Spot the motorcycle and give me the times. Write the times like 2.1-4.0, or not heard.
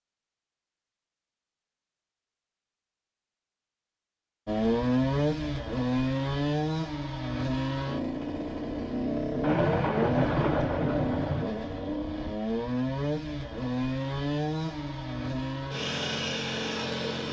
4.5-17.2.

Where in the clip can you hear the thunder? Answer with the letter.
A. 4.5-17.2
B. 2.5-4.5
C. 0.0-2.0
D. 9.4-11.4
D.